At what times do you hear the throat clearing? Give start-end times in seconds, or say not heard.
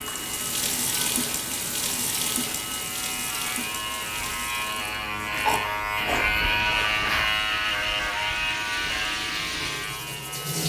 5.2-6.9.